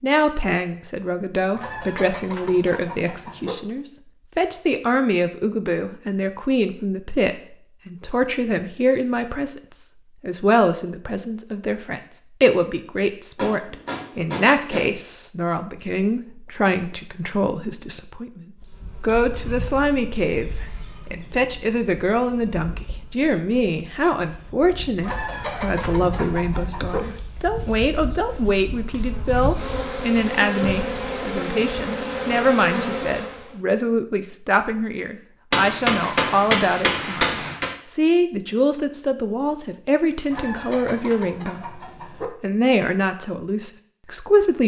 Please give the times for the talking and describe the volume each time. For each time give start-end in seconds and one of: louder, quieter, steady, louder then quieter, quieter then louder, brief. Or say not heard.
0.0-44.6 steady.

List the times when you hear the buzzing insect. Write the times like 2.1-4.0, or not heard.
18.6-33.5.